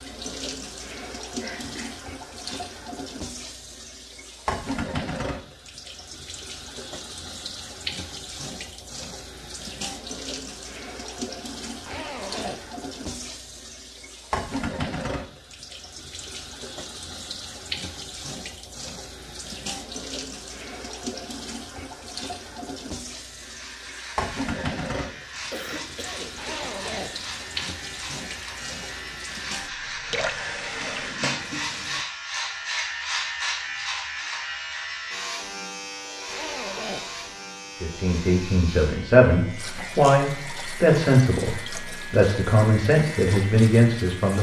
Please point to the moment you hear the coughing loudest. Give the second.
26 s.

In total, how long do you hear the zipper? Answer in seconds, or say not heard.
3 s.